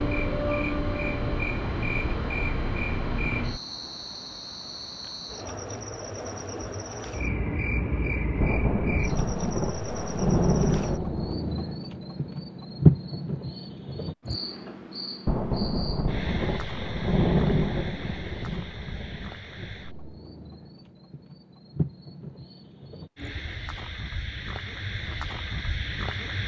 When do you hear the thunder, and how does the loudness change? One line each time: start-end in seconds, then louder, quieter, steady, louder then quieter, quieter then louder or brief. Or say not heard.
8.4-11.3 brief
15.2-20.0 louder then quieter.